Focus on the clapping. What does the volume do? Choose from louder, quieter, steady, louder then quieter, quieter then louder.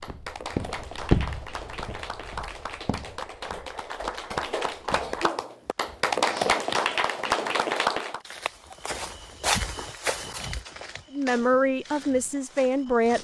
louder.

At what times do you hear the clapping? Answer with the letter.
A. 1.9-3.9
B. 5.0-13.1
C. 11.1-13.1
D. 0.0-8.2
D.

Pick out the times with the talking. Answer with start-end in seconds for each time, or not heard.
11.1-13.1.